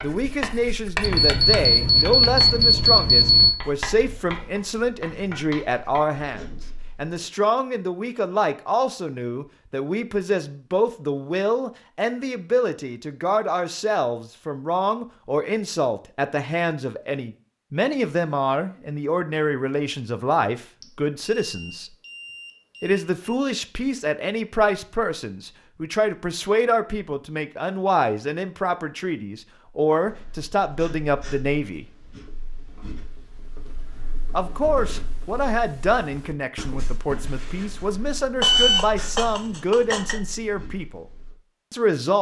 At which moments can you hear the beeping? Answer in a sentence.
The beeping can be heard from 1.0 to 3.5 s, from 20.8 to 23.4 s and from 38.4 to 40.1 s.